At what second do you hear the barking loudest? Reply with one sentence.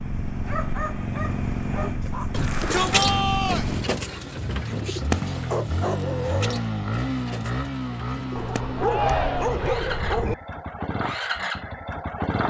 The volume of the barking peaks at 10 seconds.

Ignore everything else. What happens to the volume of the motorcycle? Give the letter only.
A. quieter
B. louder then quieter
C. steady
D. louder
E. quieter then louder
C.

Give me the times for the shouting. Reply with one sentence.
You can hear the shouting from 2.3 to 3.6 s and from 8.8 to 9.6 s.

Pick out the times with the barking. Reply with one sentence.
You can hear the barking from 0.5 to 2.3 s, from 4.8 to 6.6 s and from 8.3 to 10.3 s.